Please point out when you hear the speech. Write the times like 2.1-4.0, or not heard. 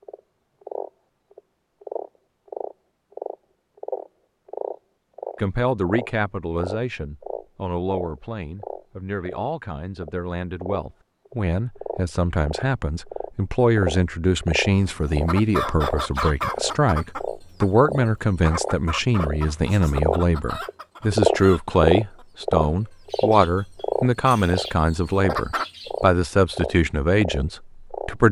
5.3-28.2.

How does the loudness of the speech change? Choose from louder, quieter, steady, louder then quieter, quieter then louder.
louder.